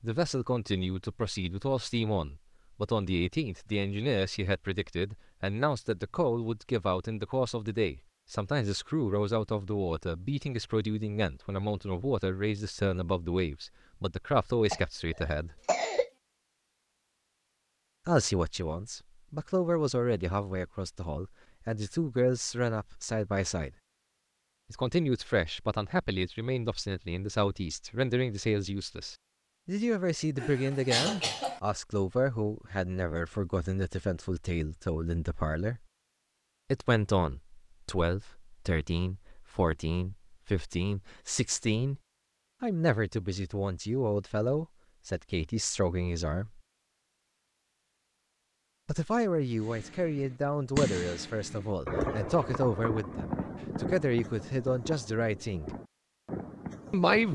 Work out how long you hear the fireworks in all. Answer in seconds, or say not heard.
8 s.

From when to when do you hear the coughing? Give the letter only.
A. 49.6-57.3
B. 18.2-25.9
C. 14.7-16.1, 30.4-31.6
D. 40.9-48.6
C.